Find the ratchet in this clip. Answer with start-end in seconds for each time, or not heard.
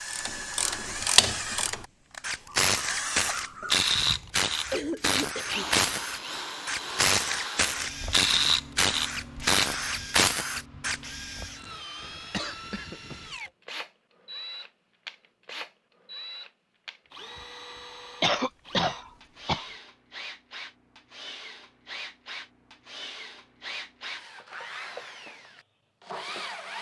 0.1-11.0.